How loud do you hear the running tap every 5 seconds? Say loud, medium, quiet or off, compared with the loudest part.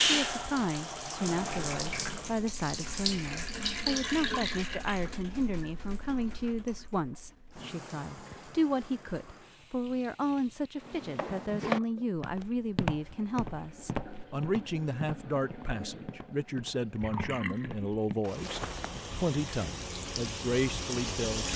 loud, quiet, quiet, medium, loud.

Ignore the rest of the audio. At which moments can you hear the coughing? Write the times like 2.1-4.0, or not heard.
not heard.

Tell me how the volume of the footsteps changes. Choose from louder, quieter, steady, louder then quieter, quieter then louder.
quieter then louder.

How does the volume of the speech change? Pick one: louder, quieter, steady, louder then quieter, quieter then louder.
steady.